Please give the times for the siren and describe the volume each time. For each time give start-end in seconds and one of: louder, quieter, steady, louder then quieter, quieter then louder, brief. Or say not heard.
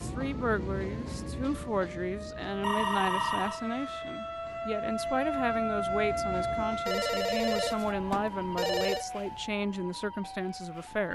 0.0-11.1 louder then quieter.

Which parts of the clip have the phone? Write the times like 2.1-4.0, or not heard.
2.6-3.6, 6.8-9.1.